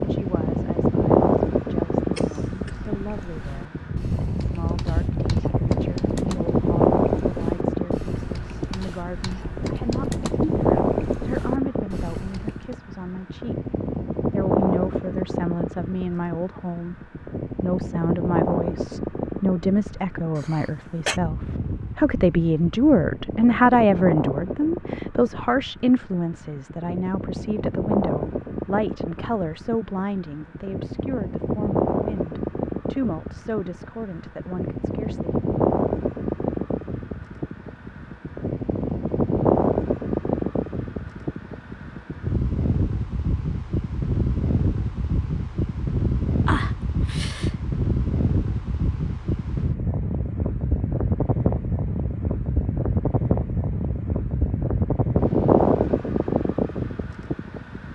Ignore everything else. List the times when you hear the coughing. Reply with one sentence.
The coughing can be heard from 2.1 to 2.8 s, from 20.4 to 21.2 s and from 46.5 to 47.5 s.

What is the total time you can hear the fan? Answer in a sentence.
The fan can be heard for 58 seconds in total.